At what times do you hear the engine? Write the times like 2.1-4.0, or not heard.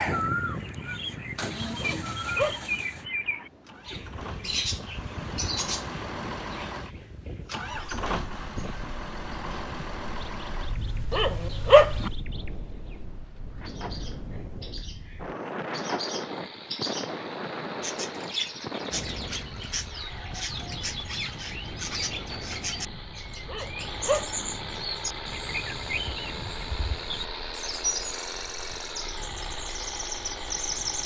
0.0-12.2, 16.1-31.0.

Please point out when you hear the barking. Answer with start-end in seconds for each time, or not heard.
1.8-2.8, 11.1-12.1, 23.4-24.4.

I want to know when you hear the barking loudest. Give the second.
12 s.